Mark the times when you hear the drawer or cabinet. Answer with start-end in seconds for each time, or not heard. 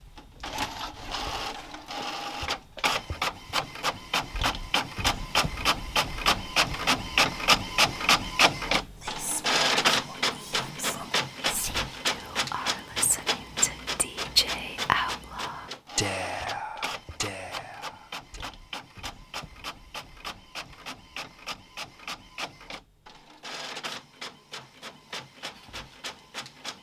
not heard.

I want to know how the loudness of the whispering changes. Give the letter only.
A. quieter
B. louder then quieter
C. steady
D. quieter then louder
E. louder
B.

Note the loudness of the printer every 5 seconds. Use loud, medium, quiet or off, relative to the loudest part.
medium, loud, medium, quiet, quiet, quiet.